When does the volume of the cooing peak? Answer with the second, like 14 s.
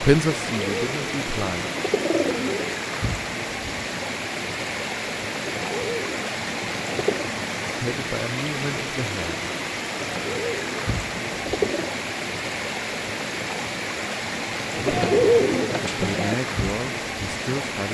15 s.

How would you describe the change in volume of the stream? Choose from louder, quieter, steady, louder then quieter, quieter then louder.
steady.